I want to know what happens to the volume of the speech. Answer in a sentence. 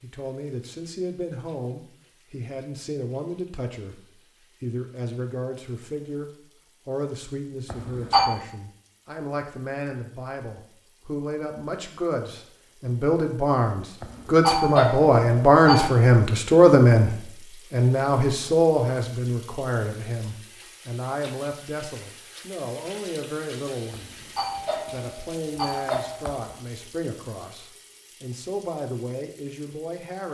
The volume of the speech goes up, then down.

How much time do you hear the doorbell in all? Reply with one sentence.
You can hear the doorbell for 5 seconds altogether.